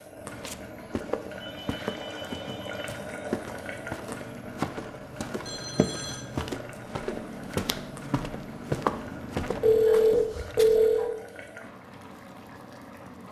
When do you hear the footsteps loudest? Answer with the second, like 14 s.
9 s.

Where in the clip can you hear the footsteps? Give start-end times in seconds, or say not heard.
0.2-10.8.